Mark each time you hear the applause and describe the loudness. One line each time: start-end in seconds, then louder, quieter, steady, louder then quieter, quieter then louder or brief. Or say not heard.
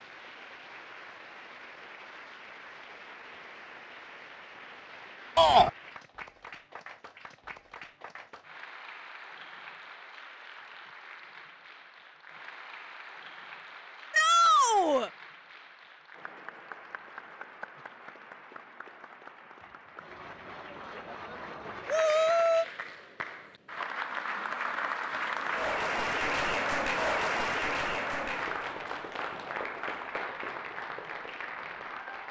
0.0-32.2 louder.